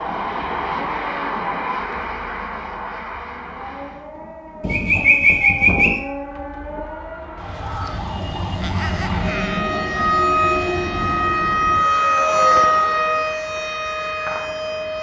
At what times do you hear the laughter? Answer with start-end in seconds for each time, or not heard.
8.6-9.7.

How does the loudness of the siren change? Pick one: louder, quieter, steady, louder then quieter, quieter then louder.
louder.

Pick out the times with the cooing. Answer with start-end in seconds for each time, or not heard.
4.6-6.0.